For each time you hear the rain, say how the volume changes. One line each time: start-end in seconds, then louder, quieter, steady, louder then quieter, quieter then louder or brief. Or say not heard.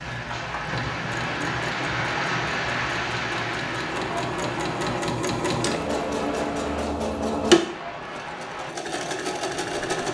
0.0-10.0 quieter.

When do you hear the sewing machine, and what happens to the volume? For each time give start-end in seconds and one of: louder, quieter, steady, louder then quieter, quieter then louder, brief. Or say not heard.
0.0-10.0 louder then quieter.